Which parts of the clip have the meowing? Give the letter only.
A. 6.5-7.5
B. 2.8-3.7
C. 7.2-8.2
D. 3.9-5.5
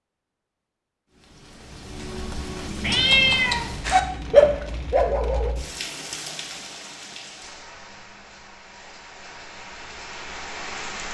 B.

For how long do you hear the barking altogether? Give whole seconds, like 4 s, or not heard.
2 s.